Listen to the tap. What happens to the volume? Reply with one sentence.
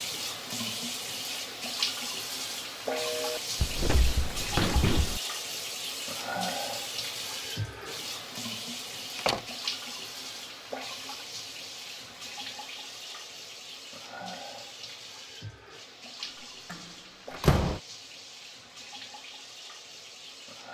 The loudness of the tap goes down.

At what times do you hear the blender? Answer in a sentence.
The blender can't be heard in this clip.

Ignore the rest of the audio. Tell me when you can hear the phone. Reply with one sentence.
You can hear the phone from 2.9 to 3.4 s.